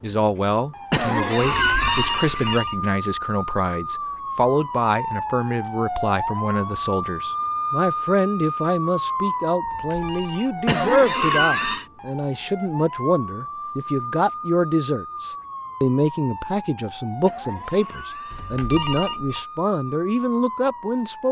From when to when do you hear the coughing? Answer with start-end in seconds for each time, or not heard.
0.9-2.9, 10.7-11.8, 17.2-18.6.